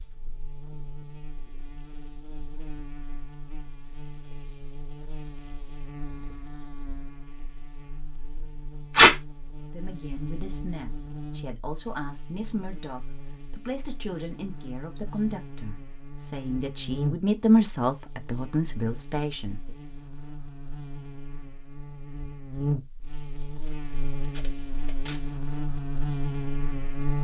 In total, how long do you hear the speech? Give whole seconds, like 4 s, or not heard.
10 s.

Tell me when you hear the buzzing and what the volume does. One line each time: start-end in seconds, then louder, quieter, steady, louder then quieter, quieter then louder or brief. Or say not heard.
0.0-27.1 louder.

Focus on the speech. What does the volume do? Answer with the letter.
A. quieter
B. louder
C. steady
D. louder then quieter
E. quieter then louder
B.